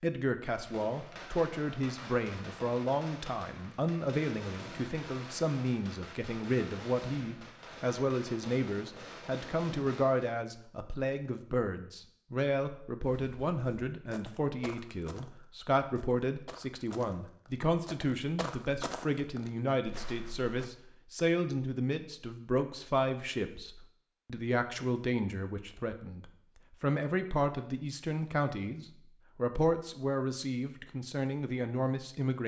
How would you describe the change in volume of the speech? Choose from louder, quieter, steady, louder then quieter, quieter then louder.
steady.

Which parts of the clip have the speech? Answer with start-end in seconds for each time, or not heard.
0.0-32.4.